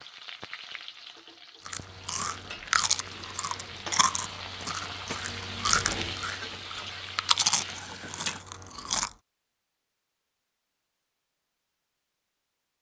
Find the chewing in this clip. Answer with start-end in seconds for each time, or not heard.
1.6-9.2.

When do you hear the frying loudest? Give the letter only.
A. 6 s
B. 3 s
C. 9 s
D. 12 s
A.